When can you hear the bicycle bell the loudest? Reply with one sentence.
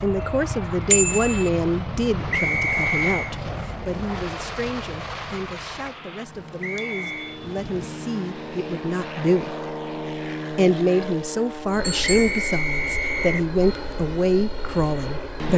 The loudest moment of the bicycle bell is at 1 second.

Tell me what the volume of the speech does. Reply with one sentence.
The volume of the speech goes down, then up.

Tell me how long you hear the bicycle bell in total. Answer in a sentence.
The bicycle bell can be heard for 3 seconds in total.